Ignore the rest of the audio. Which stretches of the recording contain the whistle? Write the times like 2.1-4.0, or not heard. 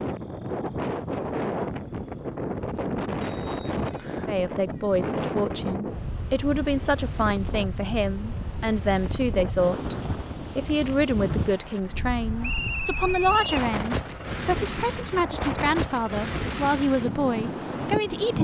3.2-4.3, 12.4-13.6.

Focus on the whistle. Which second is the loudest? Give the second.
13 s.